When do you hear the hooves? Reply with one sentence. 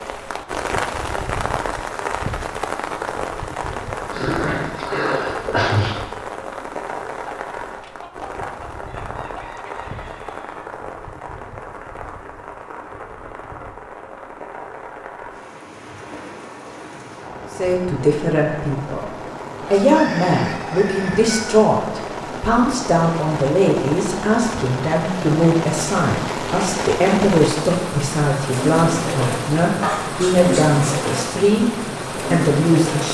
You can't hear the hooves here.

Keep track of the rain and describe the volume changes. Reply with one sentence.
The loudness of the rain goes down, then up.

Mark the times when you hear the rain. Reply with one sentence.
The rain can be heard from 0.0 to 33.0 s.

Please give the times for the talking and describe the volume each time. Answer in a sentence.
The talking can be heard briefly from 17.6 to 19.1 s; from 19.7 to 31.7 s, at a steady volume; and briefly from 32.3 to 33.0 s.